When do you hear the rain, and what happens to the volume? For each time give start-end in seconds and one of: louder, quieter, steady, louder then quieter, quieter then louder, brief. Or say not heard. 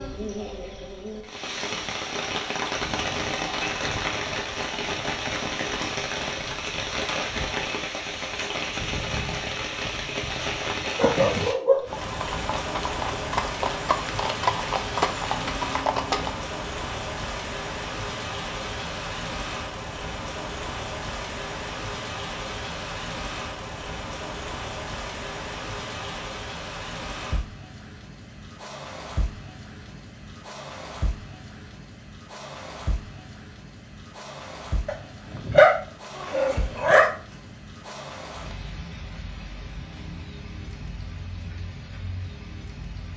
0.0-43.1 quieter.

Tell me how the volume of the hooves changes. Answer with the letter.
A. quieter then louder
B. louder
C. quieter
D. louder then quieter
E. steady
B.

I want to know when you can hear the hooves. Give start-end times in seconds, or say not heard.
10.8-16.4.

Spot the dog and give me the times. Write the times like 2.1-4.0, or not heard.
10.2-11.9, 34.9-37.1.